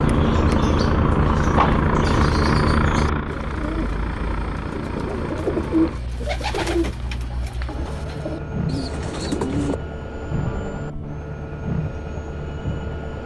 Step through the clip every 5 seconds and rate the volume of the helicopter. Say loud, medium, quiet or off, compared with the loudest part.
loud, medium, medium.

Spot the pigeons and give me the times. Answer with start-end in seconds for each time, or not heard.
0.0-9.8.